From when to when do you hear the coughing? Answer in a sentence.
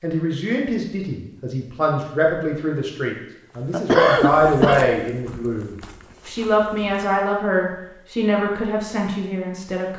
You can hear the coughing from 3.7 to 4.8 s.